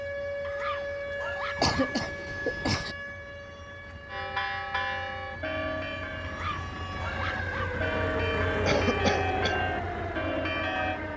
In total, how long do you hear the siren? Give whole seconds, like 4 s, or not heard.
11 s.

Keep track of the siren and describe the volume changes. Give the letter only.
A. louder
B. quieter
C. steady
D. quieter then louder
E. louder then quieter
D.